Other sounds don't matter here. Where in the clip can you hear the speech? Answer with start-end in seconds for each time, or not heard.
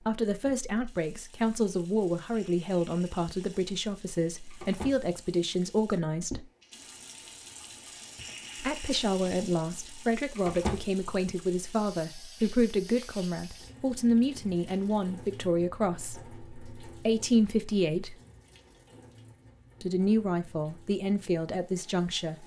0.1-6.5, 8.6-18.1, 19.8-22.4.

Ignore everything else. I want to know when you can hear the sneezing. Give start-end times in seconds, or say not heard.
not heard.